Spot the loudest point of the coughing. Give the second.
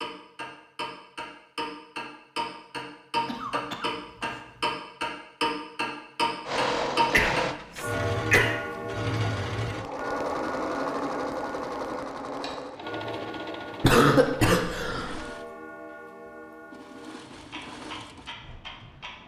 14 s.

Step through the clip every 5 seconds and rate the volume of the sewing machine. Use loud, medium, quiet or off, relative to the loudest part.
off, loud, loud, quiet.